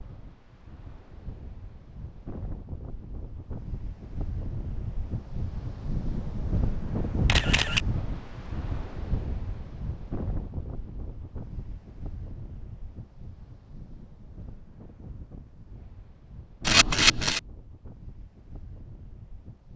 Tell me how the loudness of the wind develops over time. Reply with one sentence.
The loudness of the wind goes up, then down.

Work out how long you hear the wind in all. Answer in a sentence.
The wind can be heard for 20 seconds in total.